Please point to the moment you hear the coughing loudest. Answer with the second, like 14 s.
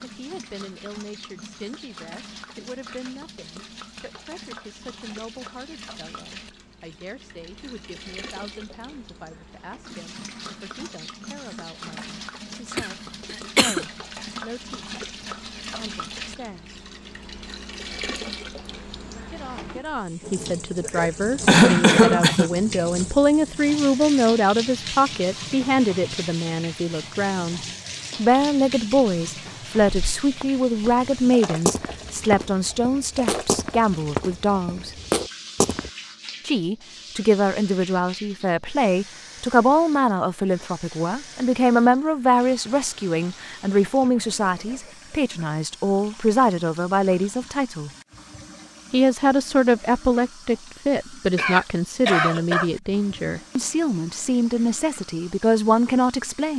22 s.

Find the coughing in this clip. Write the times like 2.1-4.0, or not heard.
12.8-13.8, 20.8-22.5, 51.4-52.7.